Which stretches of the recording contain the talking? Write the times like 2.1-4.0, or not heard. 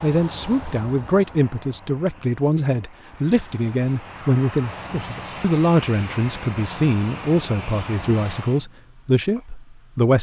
0.0-10.1.